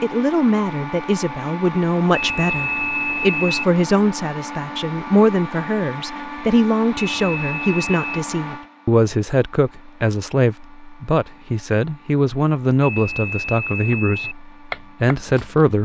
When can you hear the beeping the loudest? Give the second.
3 s.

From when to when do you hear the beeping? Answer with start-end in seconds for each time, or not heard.
2.1-3.6, 7.0-8.2, 12.8-14.3.